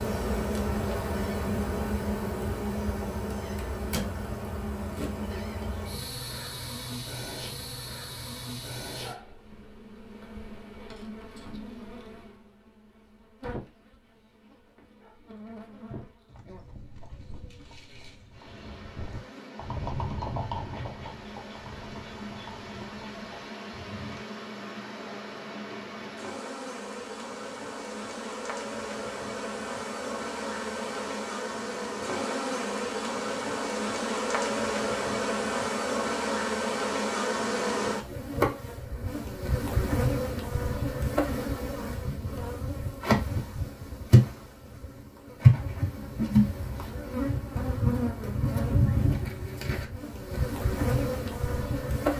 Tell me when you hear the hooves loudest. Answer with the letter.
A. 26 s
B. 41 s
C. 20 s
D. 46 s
C.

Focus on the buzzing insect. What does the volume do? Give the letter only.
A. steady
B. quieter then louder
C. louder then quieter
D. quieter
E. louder
B.